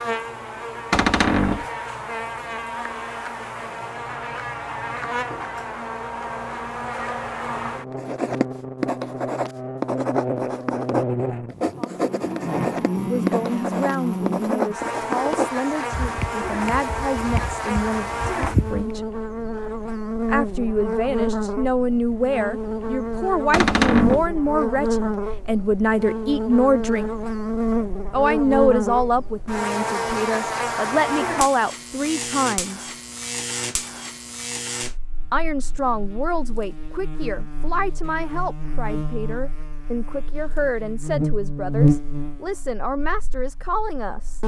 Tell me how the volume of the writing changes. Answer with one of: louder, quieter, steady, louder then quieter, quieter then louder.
quieter.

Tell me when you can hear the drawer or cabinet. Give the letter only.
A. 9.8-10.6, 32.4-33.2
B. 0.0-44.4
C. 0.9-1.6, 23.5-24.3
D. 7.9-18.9
C.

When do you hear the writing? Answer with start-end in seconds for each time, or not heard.
7.9-18.9.